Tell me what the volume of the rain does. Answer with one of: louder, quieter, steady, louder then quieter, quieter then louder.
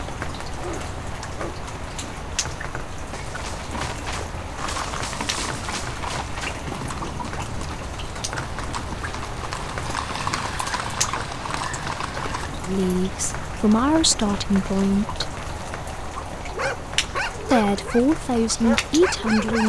steady.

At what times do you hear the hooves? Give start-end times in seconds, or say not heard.
3.1-12.5.